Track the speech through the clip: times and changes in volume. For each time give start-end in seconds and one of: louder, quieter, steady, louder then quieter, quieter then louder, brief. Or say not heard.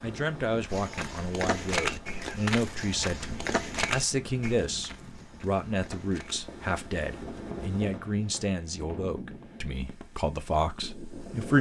0.0-11.5 steady.